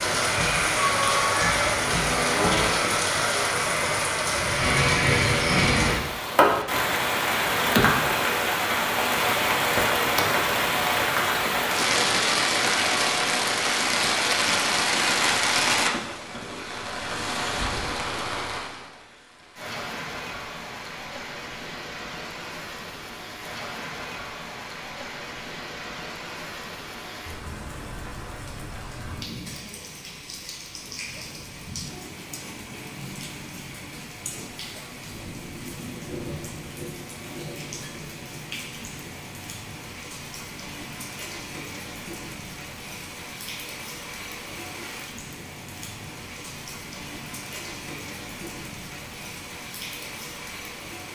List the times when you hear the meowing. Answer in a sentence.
The meowing can be heard from 0.8 to 1.6 s.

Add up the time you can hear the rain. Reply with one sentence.
The rain can be heard for 51 seconds in total.